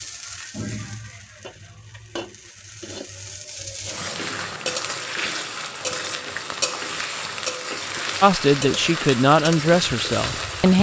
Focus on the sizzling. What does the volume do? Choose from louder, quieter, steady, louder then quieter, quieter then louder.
louder.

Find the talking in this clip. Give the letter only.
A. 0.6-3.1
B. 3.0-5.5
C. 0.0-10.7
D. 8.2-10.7
D.